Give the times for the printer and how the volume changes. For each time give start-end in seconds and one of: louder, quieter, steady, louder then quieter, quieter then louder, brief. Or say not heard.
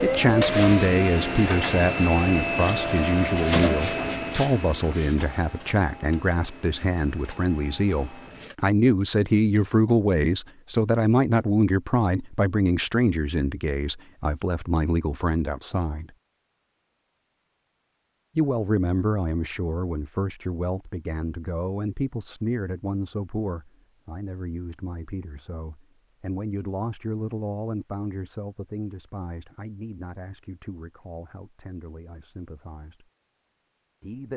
0.0-8.6 quieter.